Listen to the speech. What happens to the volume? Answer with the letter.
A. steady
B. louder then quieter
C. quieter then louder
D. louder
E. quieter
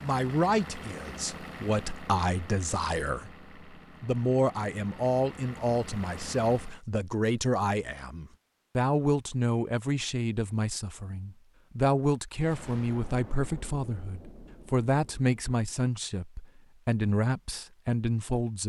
A.